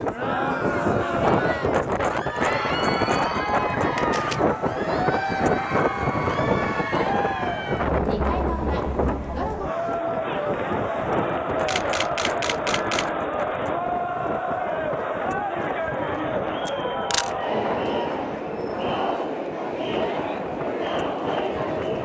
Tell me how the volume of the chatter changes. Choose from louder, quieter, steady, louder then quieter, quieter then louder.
steady.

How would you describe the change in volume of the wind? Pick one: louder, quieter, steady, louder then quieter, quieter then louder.
quieter.